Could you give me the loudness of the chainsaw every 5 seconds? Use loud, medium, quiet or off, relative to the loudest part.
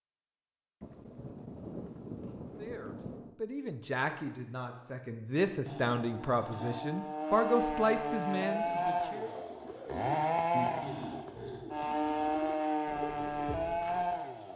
off, loud, loud.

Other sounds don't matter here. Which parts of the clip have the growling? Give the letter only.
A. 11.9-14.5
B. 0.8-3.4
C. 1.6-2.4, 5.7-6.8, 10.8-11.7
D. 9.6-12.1
C.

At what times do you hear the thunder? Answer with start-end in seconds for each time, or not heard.
0.8-3.4.